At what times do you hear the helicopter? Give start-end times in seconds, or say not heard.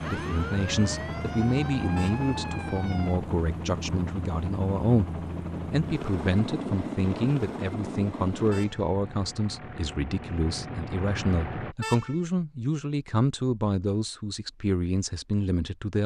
0.0-11.8.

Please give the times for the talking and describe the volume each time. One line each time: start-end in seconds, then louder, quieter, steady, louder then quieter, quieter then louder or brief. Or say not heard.
0.1-16.0 steady.